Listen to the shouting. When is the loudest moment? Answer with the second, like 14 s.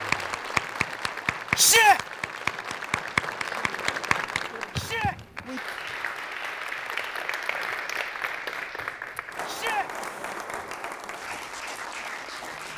2 s.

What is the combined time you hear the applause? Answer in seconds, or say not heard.
13 s.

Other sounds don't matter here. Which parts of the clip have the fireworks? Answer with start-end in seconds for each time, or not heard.
not heard.